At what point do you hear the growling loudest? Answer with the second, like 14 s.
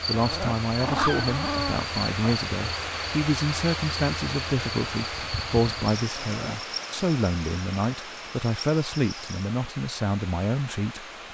1 s.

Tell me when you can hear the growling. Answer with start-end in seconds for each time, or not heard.
0.1-2.4, 6.2-6.7.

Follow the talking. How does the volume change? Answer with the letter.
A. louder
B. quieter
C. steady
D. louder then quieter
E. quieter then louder
C.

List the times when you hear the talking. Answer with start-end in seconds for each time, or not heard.
0.1-11.1.